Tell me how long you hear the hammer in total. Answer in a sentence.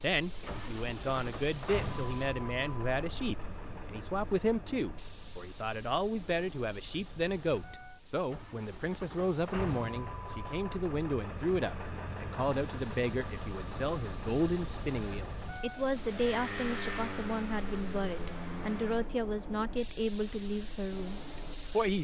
The hammer can't be heard in this clip.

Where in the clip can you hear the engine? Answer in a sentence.
The engine can be heard from 0.2 to 19.1 s.